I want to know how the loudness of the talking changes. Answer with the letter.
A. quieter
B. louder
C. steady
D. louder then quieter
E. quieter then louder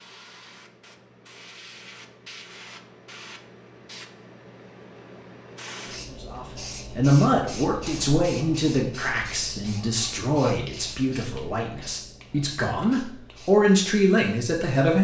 E.